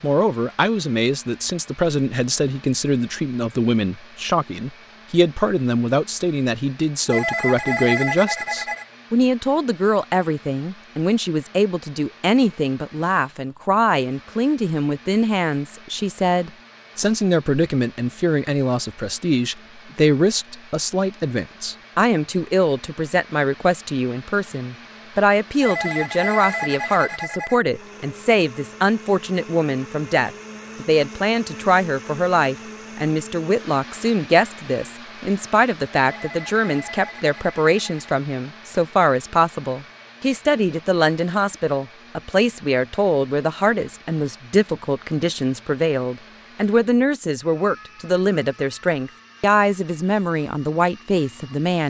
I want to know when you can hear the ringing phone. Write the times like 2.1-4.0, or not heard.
7.0-8.8, 25.6-27.6, 36.0-38.1.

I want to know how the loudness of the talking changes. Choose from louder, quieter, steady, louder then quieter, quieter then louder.
steady.